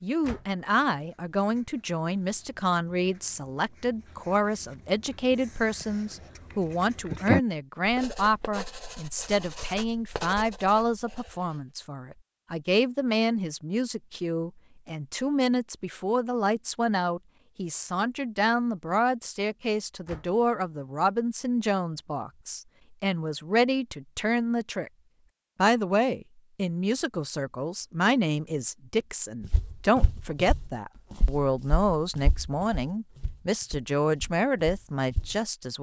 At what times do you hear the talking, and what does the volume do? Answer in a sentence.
The talking can be heard from 0.0 to 24.9 s, at a steady volume; and from 25.6 to 35.7 s, at a steady volume.